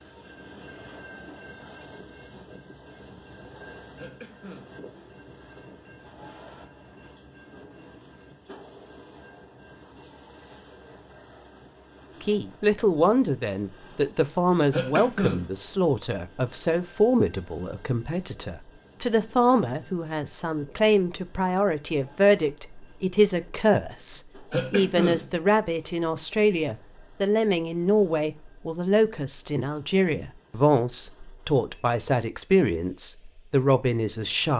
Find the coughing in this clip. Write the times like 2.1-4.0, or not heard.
4.0-4.8, 14.7-15.5, 24.5-25.3.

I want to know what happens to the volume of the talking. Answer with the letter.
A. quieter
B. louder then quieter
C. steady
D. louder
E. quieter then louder
C.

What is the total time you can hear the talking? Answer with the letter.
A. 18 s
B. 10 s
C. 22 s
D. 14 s
C.